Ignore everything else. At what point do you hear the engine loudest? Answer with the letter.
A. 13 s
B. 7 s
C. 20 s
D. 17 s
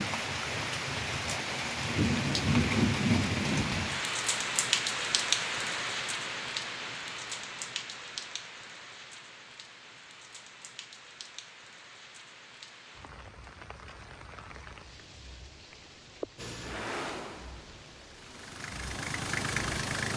C.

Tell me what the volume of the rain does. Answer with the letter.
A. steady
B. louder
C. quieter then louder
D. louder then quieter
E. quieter
E.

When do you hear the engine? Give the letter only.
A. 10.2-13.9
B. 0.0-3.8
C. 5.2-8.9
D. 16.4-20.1
D.